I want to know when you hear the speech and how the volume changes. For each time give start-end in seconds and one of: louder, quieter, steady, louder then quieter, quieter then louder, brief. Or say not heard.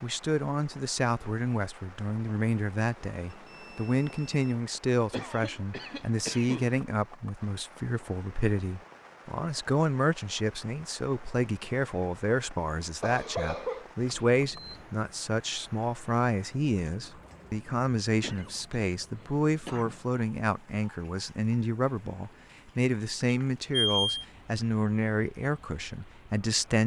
0.0-26.8 steady.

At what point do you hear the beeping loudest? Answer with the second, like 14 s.
24 s.